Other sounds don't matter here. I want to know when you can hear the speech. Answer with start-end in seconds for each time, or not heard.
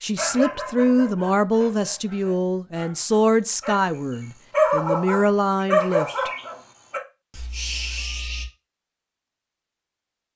0.0-6.3.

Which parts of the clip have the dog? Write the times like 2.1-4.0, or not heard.
0.1-3.9, 4.5-8.4.